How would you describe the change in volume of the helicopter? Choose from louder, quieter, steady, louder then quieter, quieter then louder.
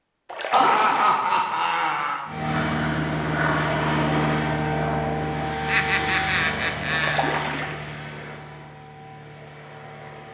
quieter.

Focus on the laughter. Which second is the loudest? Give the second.
1 s.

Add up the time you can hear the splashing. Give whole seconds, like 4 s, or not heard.
2 s.